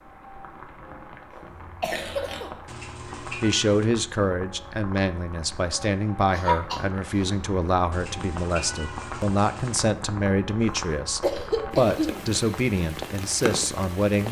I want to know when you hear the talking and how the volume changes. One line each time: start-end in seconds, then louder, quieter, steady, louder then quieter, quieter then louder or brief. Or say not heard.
3.2-14.2 steady.